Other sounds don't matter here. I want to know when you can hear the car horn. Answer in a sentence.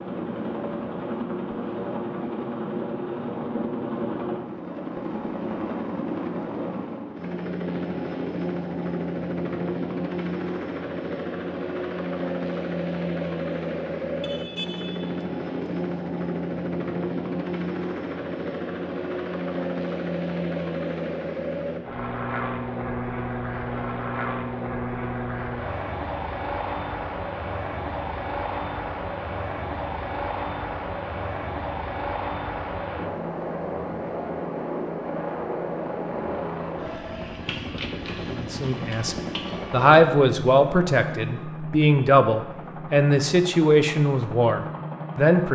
The car horn can be heard from 14.2 to 15.2 s.